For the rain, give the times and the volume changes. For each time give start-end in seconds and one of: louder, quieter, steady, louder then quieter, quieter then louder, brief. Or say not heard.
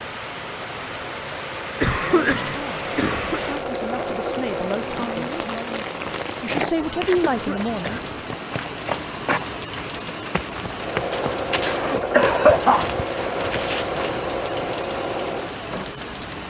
0.0-16.4 steady.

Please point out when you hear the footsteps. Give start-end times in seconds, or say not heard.
6.5-14.2.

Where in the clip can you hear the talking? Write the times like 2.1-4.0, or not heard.
2.0-5.5, 6.4-8.4.